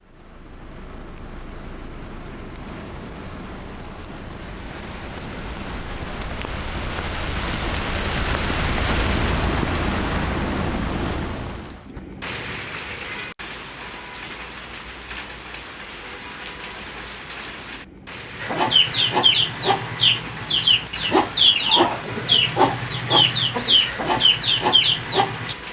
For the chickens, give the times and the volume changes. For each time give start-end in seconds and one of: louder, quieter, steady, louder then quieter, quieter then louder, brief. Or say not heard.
18.4-25.6 steady.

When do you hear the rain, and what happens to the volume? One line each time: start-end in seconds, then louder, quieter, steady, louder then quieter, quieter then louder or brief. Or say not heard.
0.0-25.6 louder then quieter.